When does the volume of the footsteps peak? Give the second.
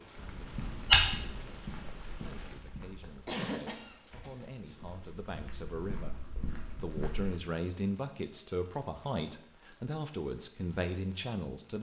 1 s.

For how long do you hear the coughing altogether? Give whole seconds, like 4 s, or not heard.
2 s.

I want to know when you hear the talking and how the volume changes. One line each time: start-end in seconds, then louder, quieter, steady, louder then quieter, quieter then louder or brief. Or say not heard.
0.1-11.7 louder.